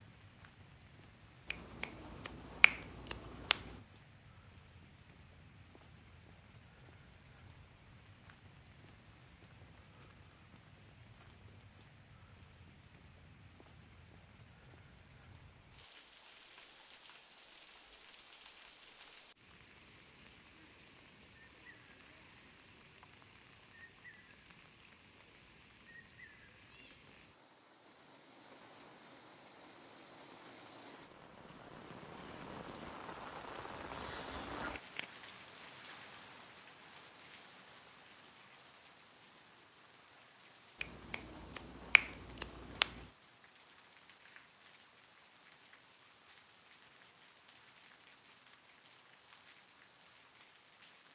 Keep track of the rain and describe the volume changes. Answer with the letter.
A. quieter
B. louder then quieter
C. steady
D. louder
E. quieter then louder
B.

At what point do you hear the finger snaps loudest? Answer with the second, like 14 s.
43 s.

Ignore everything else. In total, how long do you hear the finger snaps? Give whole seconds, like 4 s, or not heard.
5 s.